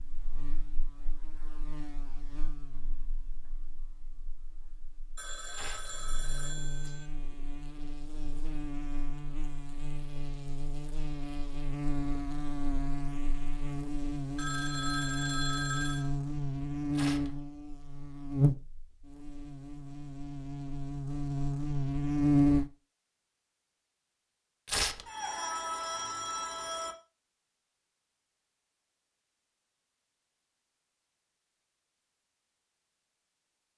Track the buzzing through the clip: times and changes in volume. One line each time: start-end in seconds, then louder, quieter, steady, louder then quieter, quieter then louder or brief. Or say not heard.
0.0-22.7 louder.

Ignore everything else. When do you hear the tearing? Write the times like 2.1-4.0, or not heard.
5.5-5.9, 16.9-17.3, 24.6-25.1.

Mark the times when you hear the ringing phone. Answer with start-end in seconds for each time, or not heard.
5.2-7.1, 14.3-16.1, 25.1-26.9.